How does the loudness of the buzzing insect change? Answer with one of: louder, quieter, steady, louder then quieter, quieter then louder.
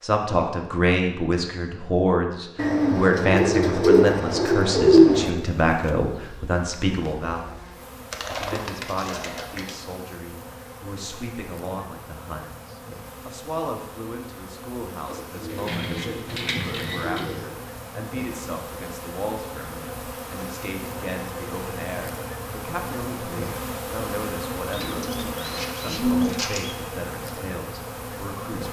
louder.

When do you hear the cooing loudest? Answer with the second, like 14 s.
5 s.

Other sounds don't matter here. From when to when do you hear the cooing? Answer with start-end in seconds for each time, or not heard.
2.5-5.3, 8.1-9.8, 15.1-17.5, 24.7-26.8.